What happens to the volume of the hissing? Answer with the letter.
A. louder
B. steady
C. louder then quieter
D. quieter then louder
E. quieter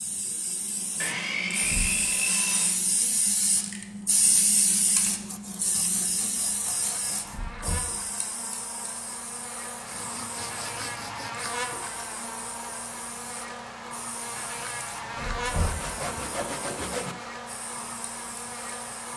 E.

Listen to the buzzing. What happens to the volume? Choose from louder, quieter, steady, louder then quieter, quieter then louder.
louder.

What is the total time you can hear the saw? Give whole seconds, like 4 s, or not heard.
8 s.